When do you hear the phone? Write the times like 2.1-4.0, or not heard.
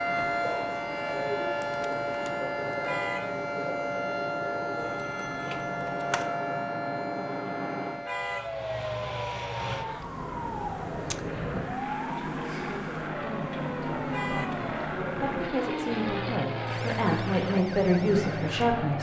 4.9-6.3.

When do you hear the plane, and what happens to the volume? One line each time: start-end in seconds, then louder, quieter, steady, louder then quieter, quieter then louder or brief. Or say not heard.
0.0-18.9 louder.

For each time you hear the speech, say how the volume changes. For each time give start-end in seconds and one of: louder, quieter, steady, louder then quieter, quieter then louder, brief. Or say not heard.
12.1-18.9 louder.